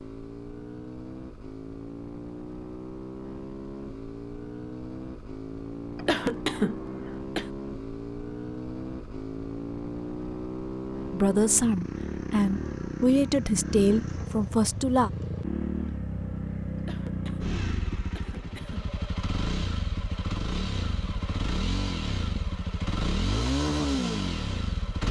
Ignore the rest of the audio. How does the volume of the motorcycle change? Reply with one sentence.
The loudness of the motorcycle goes up.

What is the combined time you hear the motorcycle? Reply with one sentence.
The motorcycle can be heard for 25 seconds in total.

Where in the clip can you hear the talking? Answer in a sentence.
You can hear the talking from 11.1 to 15.1 s.